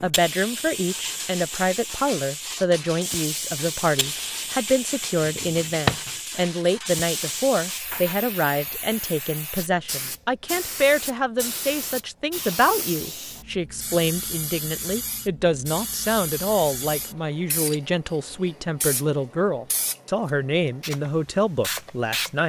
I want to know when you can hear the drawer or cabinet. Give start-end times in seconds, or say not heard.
5.2-6.1.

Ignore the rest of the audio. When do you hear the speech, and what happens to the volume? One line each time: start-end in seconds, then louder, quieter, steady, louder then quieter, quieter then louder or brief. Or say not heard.
0.0-22.4 steady.